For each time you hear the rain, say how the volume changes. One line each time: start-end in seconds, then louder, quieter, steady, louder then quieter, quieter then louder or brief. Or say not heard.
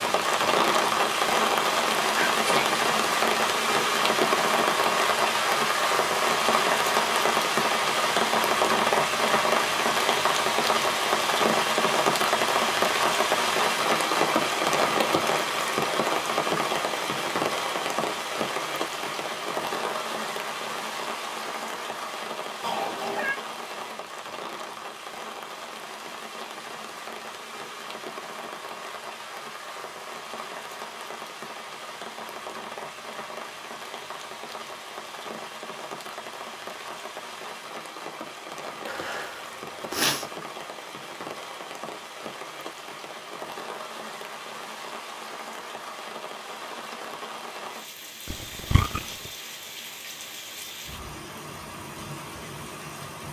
0.0-53.2 quieter.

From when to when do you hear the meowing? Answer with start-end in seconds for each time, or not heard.
22.6-23.4, 48.2-49.0.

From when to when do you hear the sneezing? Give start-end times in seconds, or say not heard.
2.2-2.8, 38.9-40.2.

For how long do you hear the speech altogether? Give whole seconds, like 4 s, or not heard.
not heard.